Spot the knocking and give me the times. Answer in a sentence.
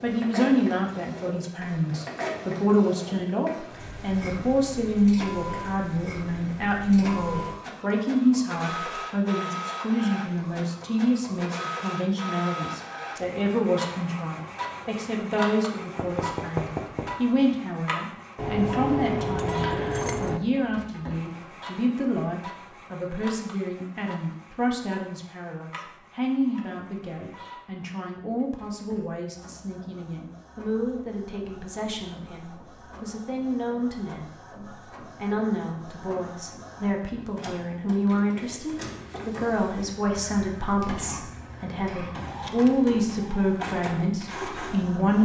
You can hear the knocking from 15.9 to 17.1 s.